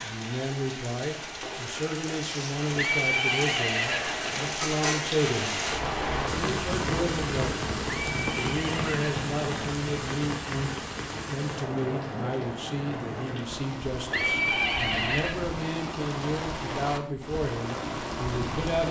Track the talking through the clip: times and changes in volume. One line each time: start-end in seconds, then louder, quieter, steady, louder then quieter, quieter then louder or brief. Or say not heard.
0.0-18.8 steady.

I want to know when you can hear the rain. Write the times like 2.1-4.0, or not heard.
0.0-18.8.